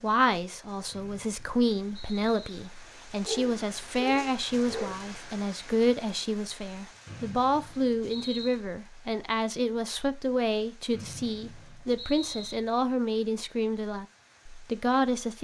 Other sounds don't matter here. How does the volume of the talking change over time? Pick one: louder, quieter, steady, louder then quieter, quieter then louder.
steady.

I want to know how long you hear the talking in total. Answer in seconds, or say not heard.
15 s.